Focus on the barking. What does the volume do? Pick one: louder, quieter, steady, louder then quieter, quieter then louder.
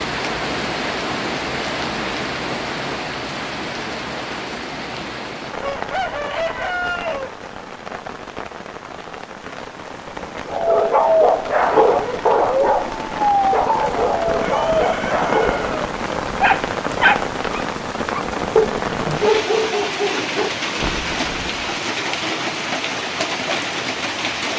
quieter.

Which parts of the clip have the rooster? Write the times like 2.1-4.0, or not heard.
5.6-7.3, 14.3-15.8.